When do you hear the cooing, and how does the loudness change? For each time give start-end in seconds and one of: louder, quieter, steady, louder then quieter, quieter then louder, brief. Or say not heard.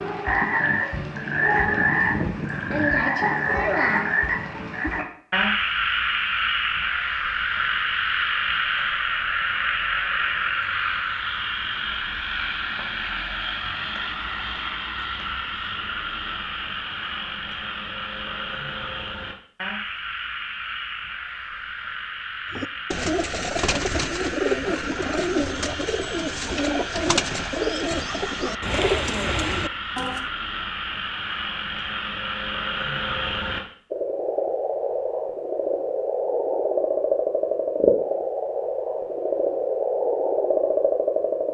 22.5-30.2 steady.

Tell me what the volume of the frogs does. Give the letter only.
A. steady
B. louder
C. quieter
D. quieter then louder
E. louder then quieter
D.